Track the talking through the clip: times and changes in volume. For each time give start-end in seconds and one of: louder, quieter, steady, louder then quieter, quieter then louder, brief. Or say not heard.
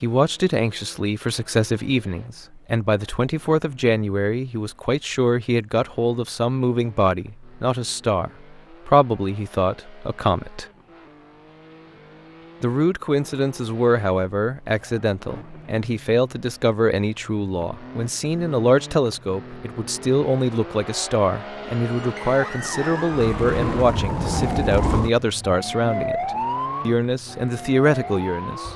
0.0-10.7 steady
12.6-28.7 steady.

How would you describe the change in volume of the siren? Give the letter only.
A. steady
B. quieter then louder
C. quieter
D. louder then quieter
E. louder
D.